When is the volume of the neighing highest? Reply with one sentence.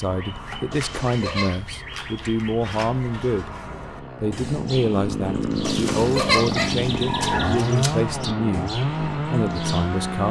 The volume of the neighing peaks at 6 seconds.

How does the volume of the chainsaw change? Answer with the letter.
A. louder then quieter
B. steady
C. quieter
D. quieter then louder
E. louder
E.